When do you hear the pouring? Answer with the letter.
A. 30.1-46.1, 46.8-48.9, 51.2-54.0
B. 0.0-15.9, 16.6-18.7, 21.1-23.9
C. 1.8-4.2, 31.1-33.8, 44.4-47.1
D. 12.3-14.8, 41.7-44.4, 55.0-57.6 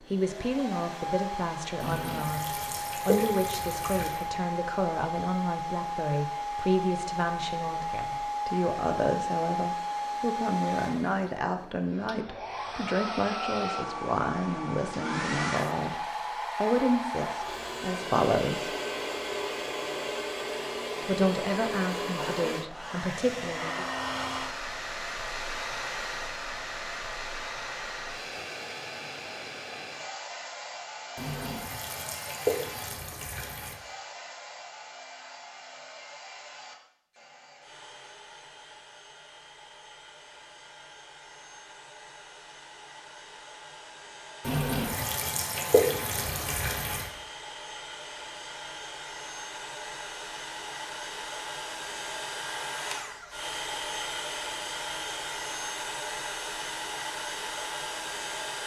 C.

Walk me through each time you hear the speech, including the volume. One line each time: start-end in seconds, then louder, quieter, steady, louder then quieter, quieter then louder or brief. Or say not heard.
0.0-15.9 steady
16.6-18.7 brief
21.1-23.9 brief.